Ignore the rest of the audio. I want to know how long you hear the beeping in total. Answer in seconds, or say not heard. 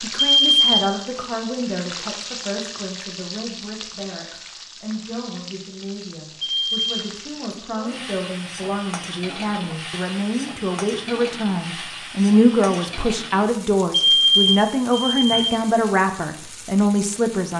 3 s.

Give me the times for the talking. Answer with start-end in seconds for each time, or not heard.
0.0-17.5.